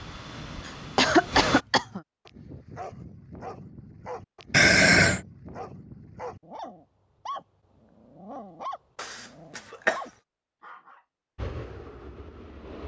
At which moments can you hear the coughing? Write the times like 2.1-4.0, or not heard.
0.7-2.0, 4.5-5.2, 8.9-10.0.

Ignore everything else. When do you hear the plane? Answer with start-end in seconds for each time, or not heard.
0.0-1.6, 11.3-12.8.